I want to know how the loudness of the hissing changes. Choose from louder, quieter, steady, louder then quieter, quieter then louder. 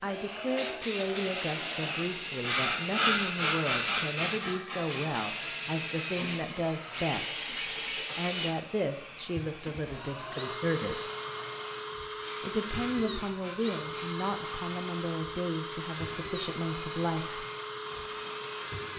quieter.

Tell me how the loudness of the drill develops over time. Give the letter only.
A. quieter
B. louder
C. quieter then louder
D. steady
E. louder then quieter
D.